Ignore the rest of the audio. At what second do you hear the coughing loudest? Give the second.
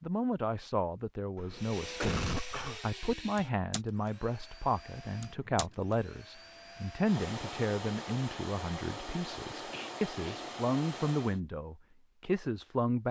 2 s.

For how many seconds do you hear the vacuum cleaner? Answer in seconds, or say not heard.
10 s.